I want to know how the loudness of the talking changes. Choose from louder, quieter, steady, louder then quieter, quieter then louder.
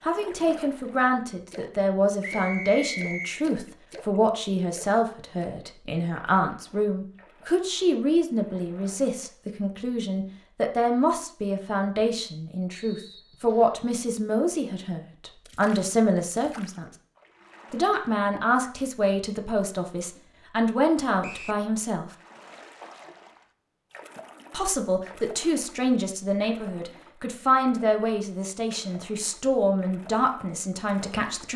steady.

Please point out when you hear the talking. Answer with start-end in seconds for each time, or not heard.
0.0-16.9, 17.7-22.1, 24.5-31.5.